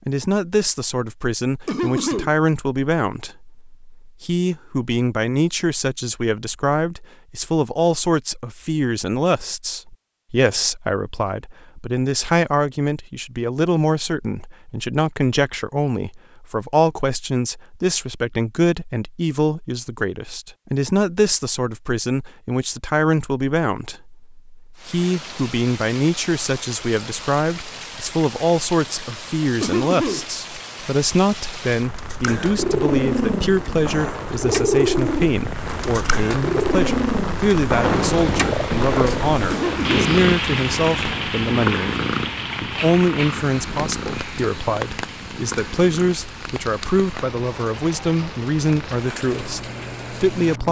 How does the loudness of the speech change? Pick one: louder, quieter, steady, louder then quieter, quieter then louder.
steady.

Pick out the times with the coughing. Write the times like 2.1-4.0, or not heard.
1.6-2.4, 29.6-30.2, 39.5-40.1.